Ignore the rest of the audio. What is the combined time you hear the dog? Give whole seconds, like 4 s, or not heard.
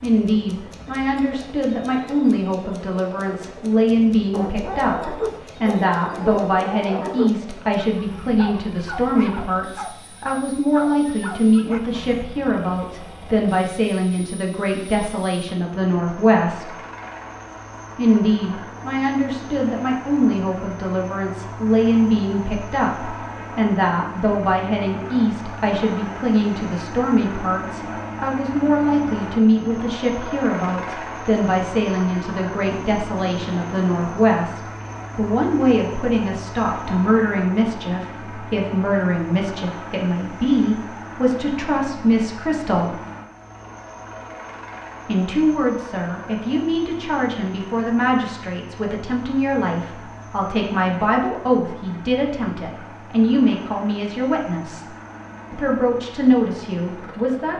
8 s.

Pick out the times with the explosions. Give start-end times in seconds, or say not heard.
not heard.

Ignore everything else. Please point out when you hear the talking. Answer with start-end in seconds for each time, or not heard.
0.0-16.8, 17.9-43.0, 45.0-54.9, 55.5-57.5.